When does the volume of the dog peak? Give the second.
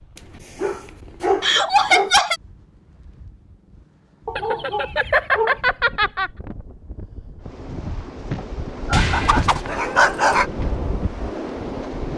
10 s.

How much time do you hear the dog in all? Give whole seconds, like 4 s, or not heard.
5 s.